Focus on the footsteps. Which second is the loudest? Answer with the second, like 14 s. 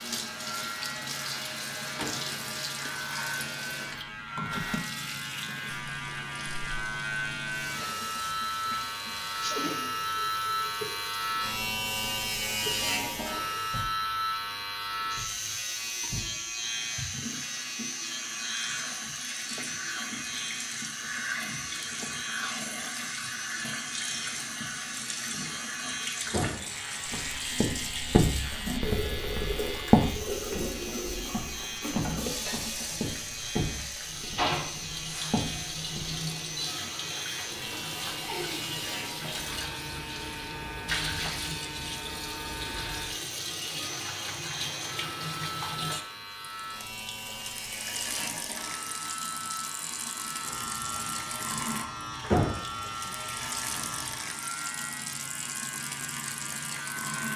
30 s.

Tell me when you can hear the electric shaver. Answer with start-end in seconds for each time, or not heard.
0.0-57.3.